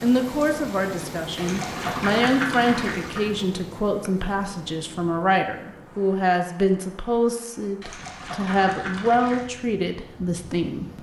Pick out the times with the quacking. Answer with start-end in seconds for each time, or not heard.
1.4-3.3, 7.8-9.4.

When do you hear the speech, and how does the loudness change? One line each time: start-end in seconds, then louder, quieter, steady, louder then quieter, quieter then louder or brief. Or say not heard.
0.0-10.9 steady.